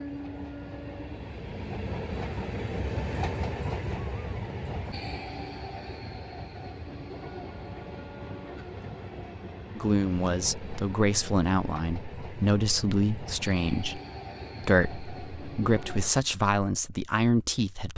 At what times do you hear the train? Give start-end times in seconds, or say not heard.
0.0-16.1.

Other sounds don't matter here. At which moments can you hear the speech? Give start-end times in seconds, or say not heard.
9.8-14.0, 14.6-17.9.